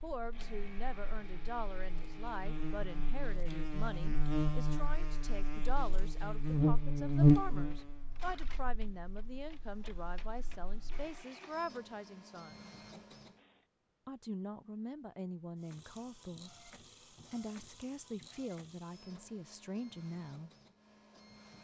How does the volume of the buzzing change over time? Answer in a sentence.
The loudness of the buzzing goes up, then down.